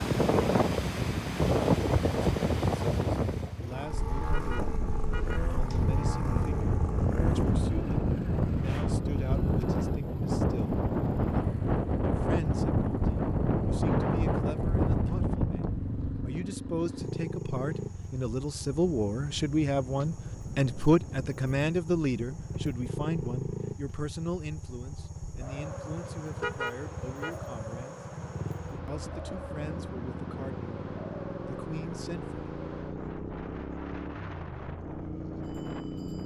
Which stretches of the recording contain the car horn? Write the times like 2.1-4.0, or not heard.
4.3-5.5, 26.4-27.4.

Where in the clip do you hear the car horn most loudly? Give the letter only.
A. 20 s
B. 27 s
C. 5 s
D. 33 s
B.